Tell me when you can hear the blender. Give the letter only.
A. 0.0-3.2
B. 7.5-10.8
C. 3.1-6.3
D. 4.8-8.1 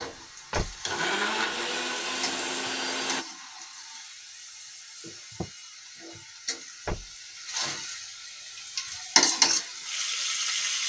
A.